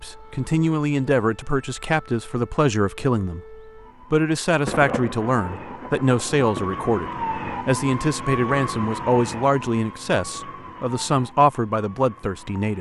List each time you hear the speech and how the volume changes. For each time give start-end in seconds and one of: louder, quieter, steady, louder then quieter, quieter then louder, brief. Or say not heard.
0.0-12.7 steady.